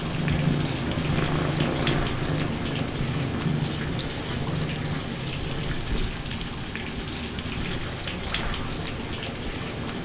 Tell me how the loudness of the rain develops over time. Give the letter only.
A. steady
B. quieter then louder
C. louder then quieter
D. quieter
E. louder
A.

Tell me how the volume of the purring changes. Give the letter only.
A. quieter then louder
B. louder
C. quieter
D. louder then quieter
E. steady
C.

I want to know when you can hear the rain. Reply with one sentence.
The rain can be heard from 0.0 to 10.0 s.